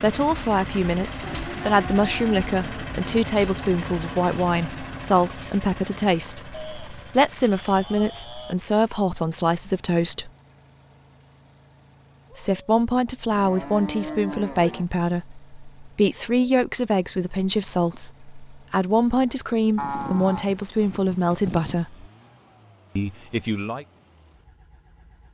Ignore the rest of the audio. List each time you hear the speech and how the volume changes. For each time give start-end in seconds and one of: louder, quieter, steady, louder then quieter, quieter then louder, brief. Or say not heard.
0.0-10.3 steady
12.3-22.1 steady
22.9-23.9 brief.